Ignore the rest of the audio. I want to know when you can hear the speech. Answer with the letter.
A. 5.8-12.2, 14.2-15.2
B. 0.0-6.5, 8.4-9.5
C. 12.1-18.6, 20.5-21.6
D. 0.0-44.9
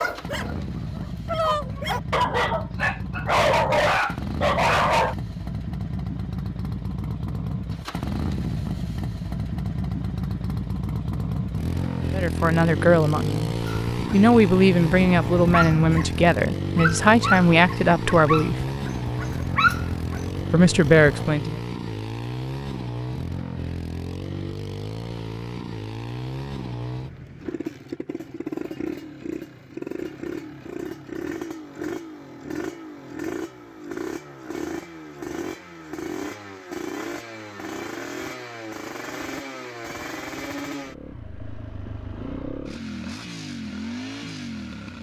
C.